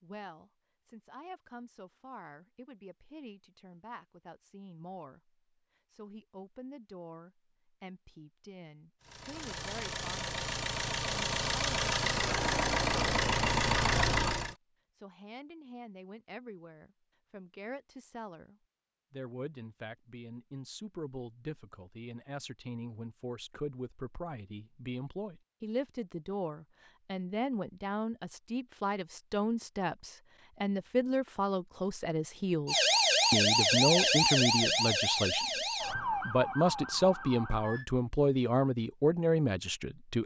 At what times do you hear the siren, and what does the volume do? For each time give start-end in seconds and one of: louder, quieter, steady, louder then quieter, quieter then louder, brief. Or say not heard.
32.6-37.9 quieter.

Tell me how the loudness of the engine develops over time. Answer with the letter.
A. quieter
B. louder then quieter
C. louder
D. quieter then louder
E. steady
C.